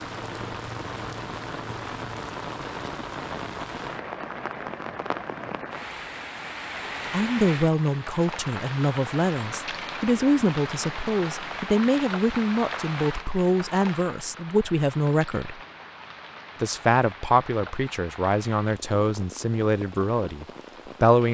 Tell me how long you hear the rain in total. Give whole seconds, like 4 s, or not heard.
21 s.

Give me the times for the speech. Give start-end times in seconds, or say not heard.
7.1-15.6, 16.6-21.2.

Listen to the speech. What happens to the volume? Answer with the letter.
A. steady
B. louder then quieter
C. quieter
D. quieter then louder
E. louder
A.